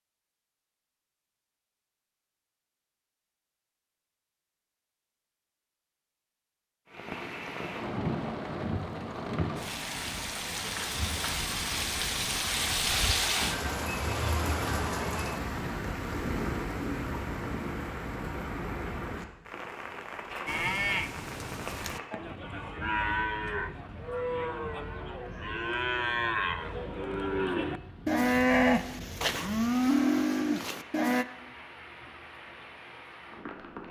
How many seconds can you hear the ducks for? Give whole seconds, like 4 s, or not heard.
not heard.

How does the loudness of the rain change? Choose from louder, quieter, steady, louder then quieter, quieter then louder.
quieter.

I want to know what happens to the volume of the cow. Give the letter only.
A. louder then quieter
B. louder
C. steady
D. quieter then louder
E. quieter
B.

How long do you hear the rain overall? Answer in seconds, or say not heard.
27 s.